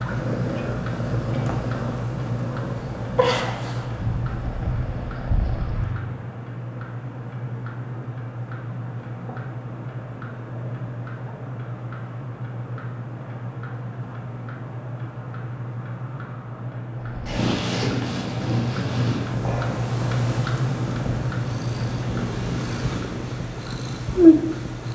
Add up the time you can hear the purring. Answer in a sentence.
You can hear the purring for 14 seconds altogether.